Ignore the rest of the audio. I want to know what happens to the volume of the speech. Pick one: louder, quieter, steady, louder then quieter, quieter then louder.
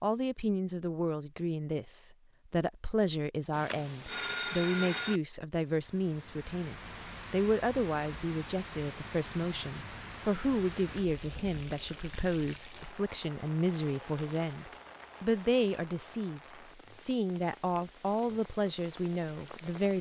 steady.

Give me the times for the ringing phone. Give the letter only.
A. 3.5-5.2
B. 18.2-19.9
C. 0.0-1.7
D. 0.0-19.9
A.